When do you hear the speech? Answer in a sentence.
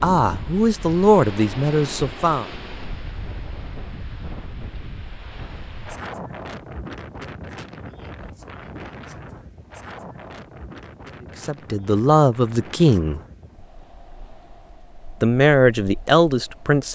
The speech can be heard from 0.0 to 2.5 s, from 11.4 to 13.2 s and from 15.2 to 16.9 s.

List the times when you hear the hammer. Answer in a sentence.
You can't hear the hammer here.